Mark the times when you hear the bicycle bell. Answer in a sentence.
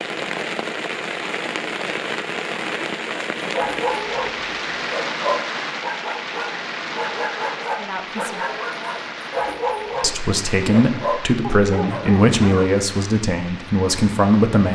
You can't hear the bicycle bell here.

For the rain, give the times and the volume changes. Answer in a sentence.
You can hear the rain from 0.0 to 14.7 s, getting quieter.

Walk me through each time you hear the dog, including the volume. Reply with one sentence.
The dog can be heard from 3.4 to 12.8 s, at a steady volume.